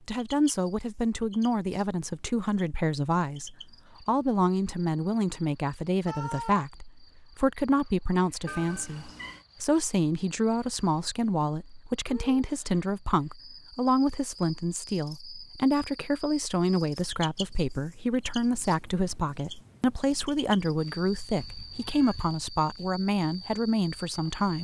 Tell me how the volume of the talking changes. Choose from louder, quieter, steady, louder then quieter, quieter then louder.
steady.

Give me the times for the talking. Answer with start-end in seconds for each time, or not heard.
0.1-24.5.